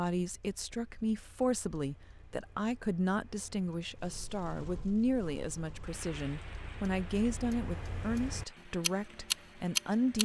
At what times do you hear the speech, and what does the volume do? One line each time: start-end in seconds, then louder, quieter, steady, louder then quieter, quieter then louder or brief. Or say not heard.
0.0-10.1 steady.